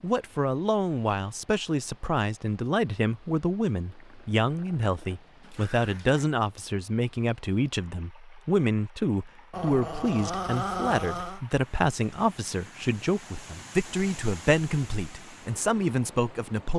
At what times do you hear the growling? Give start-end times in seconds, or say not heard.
3.9-6.3, 9.5-11.4.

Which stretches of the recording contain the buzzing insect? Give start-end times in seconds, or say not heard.
not heard.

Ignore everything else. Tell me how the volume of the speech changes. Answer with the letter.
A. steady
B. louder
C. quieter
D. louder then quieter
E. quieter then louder
A.